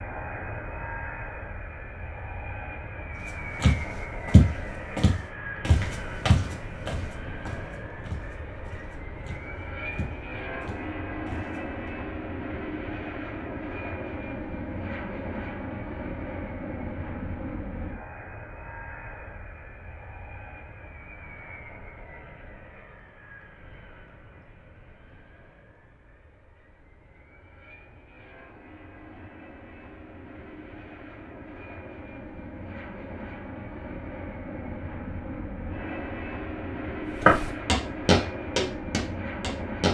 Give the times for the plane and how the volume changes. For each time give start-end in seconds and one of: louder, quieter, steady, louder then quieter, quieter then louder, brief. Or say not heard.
0.0-39.8 quieter then louder.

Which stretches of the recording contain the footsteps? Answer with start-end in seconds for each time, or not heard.
3.6-11.9, 37.2-39.8.